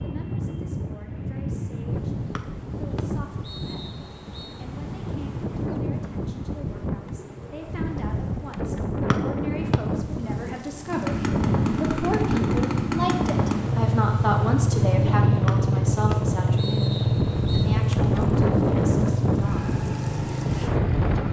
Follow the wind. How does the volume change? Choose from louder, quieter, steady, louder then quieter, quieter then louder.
louder.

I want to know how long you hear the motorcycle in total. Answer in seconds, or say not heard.
10 s.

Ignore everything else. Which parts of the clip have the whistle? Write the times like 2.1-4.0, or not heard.
2.4-4.6, 9.1-9.8, 15.4-17.6.